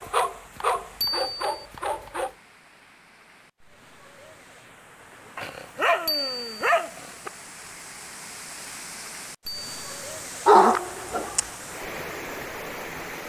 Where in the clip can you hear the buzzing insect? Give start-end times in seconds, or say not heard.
not heard.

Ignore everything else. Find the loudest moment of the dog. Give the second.
11 s.